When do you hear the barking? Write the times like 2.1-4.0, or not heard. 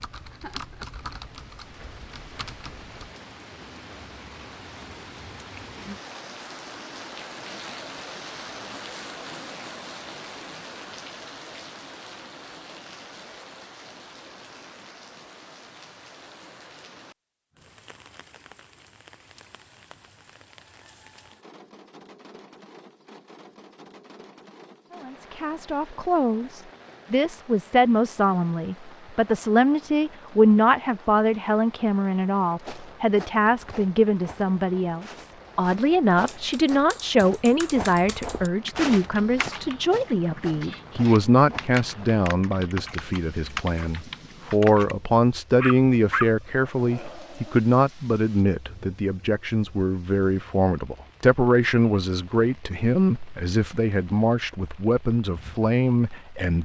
45.6-47.6.